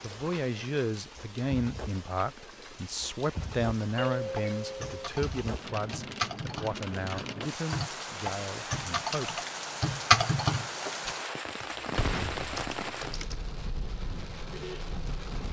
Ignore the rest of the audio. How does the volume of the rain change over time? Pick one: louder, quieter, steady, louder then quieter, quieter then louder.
louder.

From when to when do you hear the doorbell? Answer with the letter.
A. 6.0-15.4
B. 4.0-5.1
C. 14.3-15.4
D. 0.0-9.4
B.